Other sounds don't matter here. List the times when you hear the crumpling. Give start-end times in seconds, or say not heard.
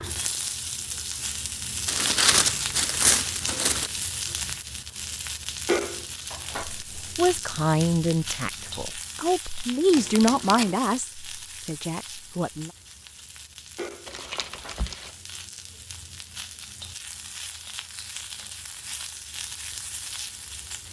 1.9-3.9, 9.9-10.8, 14.1-15.1.